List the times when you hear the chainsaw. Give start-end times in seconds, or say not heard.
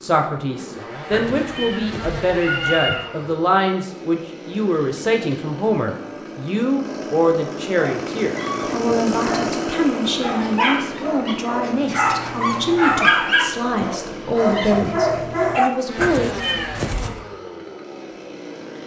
0.0-18.8.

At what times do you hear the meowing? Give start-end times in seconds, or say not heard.
1.1-3.0, 15.9-17.2.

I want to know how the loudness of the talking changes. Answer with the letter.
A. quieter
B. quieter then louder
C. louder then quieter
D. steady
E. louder
D.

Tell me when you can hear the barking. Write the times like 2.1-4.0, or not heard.
7.8-15.7.